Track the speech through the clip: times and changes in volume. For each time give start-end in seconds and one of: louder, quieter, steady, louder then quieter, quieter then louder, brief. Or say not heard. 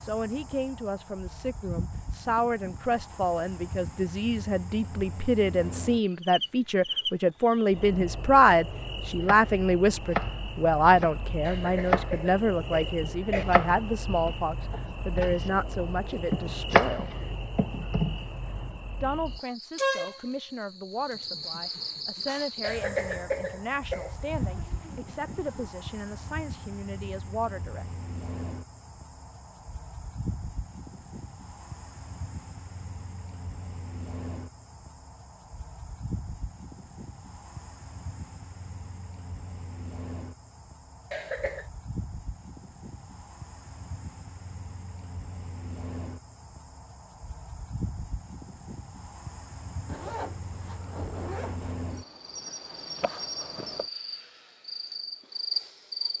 0.0-17.1 louder then quieter
19.0-27.9 steady.